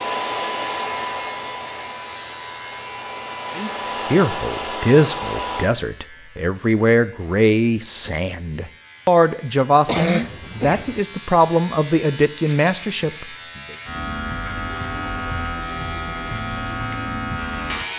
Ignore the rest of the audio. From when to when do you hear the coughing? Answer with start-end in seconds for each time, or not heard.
9.8-11.0.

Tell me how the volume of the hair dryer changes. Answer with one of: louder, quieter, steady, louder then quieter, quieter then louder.
quieter then louder.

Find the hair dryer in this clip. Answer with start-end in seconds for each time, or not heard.
0.0-5.7.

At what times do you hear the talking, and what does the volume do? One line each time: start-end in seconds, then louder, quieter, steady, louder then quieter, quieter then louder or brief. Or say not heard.
3.5-13.8 steady.